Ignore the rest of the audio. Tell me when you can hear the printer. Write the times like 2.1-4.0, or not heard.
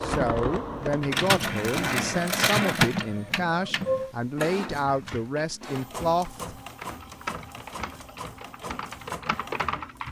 0.0-10.0.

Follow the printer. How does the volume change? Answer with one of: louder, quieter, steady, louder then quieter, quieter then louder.
quieter.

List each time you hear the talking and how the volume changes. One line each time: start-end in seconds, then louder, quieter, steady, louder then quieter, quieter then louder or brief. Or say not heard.
0.0-6.5 steady.